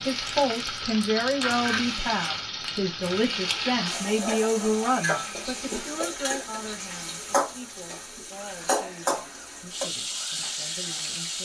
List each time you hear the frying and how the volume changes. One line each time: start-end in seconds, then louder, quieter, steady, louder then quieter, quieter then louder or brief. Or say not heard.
0.0-11.4 steady.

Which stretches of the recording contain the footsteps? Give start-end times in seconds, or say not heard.
not heard.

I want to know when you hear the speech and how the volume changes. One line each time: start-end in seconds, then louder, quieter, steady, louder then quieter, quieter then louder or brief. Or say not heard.
0.1-11.4 quieter.